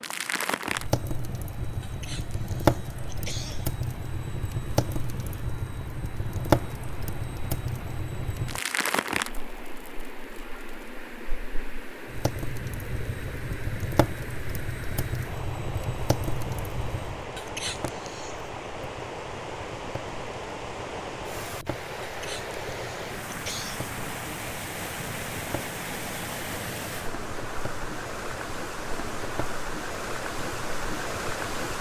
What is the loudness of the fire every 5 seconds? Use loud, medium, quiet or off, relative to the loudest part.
loud, loud, medium, medium, quiet, quiet, quiet.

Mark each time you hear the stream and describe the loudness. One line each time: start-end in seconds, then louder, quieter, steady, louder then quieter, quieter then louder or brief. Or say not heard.
0.0-31.7 louder.